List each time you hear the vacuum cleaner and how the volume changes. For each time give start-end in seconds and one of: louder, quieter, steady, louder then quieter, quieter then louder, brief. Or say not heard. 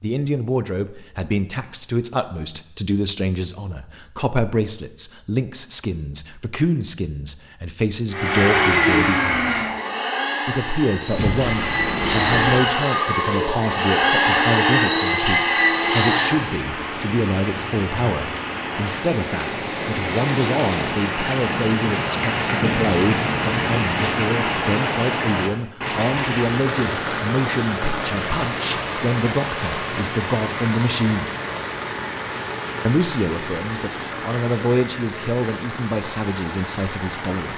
8.1-16.4 quieter then louder.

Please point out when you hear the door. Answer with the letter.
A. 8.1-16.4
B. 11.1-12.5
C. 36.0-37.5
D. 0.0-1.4
B.